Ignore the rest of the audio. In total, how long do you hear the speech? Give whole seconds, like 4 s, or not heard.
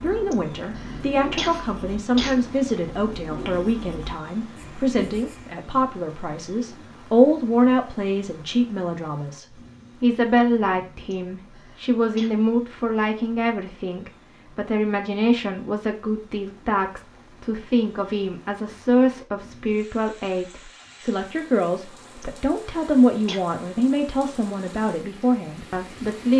26 s.